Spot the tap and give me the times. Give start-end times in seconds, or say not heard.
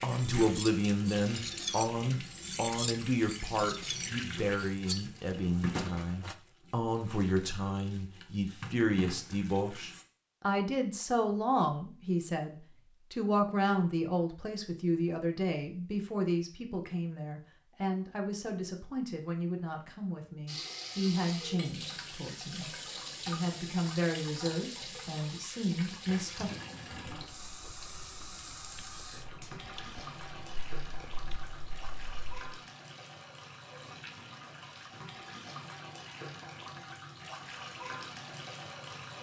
0.0-10.1, 20.4-39.1.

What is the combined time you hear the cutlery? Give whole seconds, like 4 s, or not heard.
6 s.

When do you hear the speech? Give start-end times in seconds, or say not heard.
0.0-26.5.